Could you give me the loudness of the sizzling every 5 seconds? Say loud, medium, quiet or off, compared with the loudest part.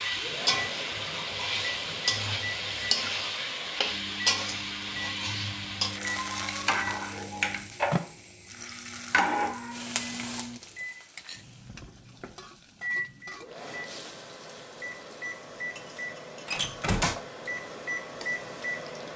loud, loud, quiet, quiet.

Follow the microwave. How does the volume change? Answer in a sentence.
The volume of the microwave stays about the same.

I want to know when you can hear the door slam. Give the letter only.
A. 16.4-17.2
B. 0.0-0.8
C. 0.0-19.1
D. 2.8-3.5
A.